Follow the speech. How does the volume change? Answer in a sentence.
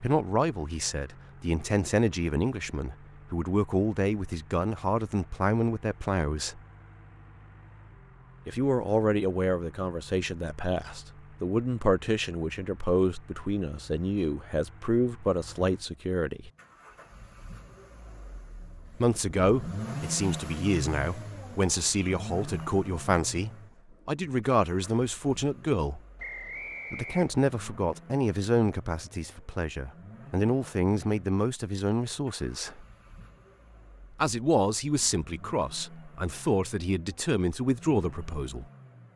The loudness of the speech stays about the same.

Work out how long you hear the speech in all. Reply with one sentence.
The speech can be heard for 32 seconds in total.